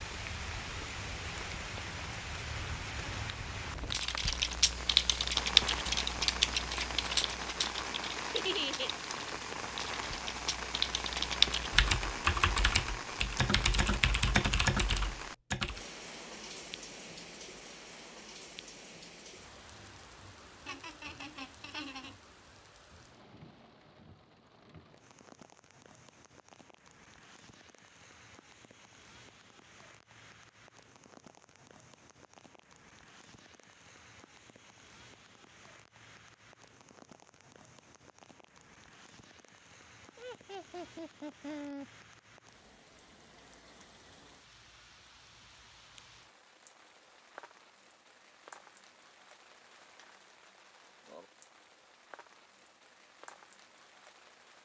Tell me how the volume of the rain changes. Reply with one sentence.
The volume of the rain goes down.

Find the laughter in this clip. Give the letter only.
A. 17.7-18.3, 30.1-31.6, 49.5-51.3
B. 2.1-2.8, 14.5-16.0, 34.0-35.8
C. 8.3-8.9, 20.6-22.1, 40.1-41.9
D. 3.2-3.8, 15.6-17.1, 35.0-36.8
C.